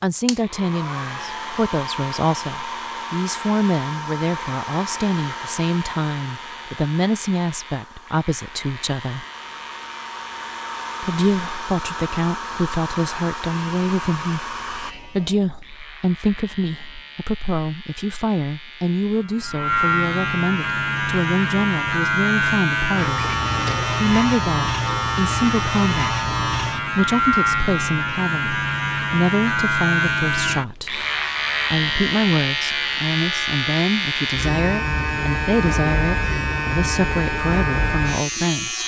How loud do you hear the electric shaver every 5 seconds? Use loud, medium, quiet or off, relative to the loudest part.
quiet, quiet, quiet, medium, loud, loud, loud, loud.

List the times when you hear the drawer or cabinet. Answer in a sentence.
The drawer or cabinet can be heard from 23.1 to 24.0 s.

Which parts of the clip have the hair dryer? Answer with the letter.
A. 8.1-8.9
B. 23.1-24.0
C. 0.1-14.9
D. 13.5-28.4
C.